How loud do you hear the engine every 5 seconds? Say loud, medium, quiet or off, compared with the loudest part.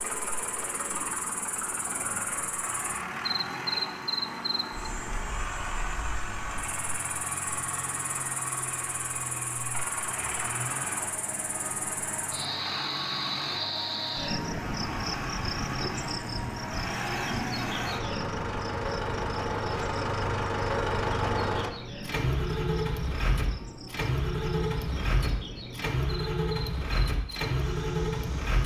medium, medium, medium, loud, loud, loud.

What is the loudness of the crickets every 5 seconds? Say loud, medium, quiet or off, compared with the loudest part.
loud, medium, loud, loud, medium, medium.